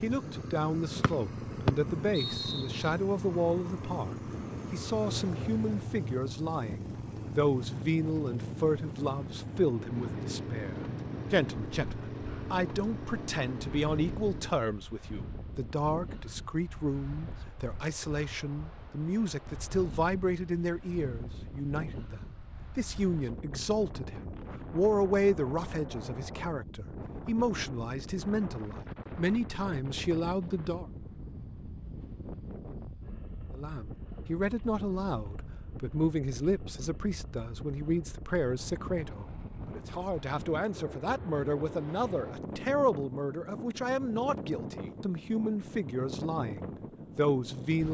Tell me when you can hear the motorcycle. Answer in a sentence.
The motorcycle can be heard from 0.0 to 14.6 s.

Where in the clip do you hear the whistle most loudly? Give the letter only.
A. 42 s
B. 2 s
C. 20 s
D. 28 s
B.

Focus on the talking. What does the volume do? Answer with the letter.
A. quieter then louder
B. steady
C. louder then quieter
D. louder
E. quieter
B.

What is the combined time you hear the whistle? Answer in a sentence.
You can hear the whistle for 2 seconds altogether.